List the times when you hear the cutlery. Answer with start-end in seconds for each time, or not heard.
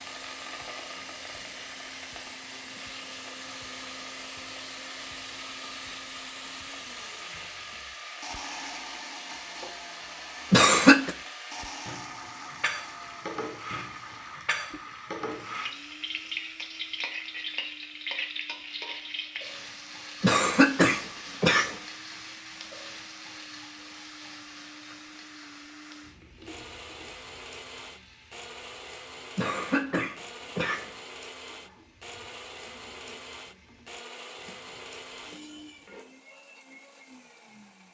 not heard.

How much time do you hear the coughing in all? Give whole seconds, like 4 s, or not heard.
4 s.